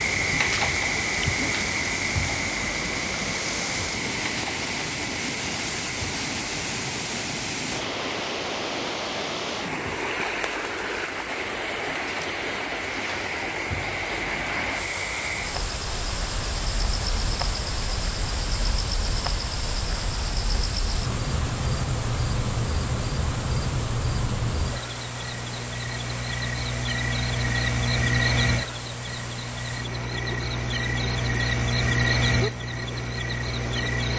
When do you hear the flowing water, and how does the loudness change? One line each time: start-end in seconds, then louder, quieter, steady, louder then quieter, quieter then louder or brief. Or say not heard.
0.0-34.1 quieter.